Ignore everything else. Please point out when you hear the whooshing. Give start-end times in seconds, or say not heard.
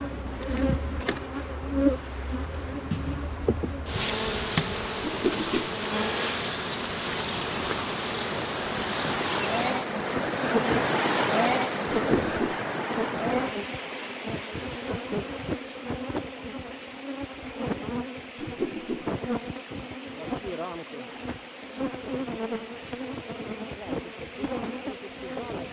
5.0-5.7, 12.0-12.6, 18.4-19.1.